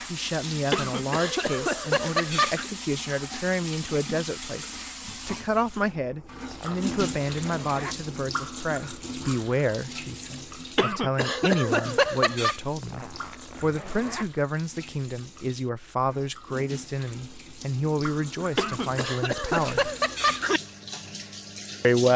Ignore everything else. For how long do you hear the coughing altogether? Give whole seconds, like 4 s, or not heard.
6 s.